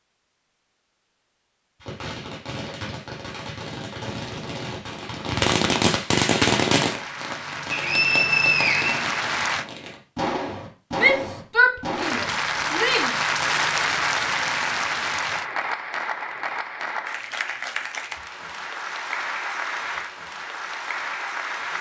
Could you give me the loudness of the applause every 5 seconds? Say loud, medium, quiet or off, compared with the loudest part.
off, medium, loud, medium, medium.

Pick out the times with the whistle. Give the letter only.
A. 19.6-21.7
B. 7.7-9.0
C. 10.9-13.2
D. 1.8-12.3
B.